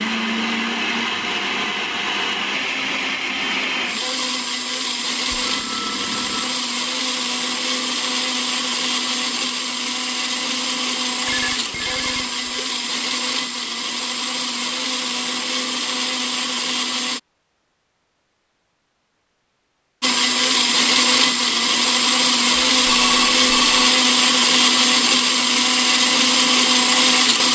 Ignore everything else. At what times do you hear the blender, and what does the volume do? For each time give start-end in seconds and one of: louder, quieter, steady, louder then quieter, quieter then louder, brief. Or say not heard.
0.0-17.2 steady
20.0-27.4 steady.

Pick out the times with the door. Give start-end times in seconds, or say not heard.
not heard.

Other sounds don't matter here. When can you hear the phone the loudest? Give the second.
23 s.